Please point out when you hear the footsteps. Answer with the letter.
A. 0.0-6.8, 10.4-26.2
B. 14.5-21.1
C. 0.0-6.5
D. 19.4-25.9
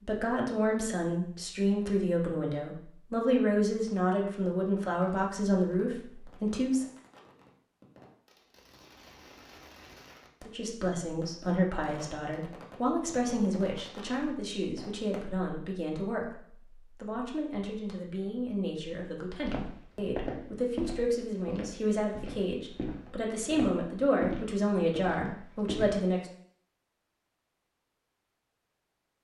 D.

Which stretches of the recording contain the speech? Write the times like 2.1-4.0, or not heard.
0.0-6.8, 10.4-26.2.